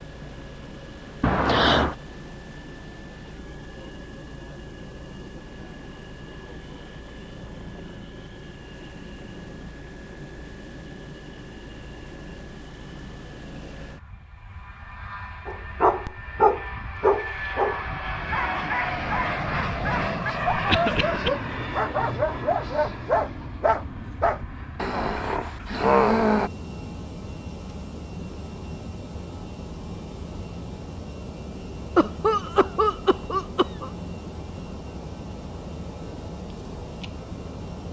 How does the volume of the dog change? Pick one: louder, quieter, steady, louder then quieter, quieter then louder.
quieter then louder.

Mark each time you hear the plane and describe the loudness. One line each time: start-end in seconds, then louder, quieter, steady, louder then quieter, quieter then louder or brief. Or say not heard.
0.0-37.8 louder then quieter.